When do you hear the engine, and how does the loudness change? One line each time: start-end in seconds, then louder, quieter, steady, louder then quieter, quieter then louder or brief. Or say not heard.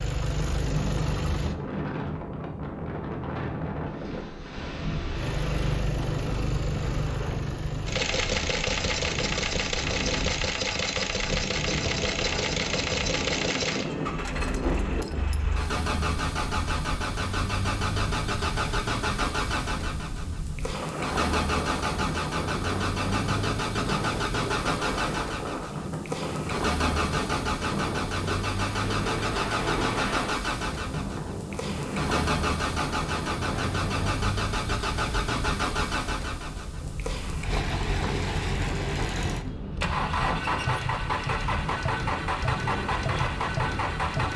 0.0-1.6 brief
5.2-44.3 steady.